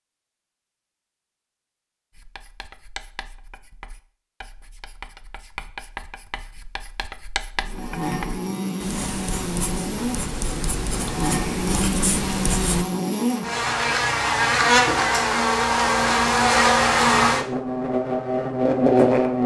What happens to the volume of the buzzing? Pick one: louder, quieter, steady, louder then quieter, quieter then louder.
louder.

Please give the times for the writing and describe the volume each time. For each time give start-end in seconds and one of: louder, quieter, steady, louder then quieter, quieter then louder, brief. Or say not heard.
2.1-12.8 louder.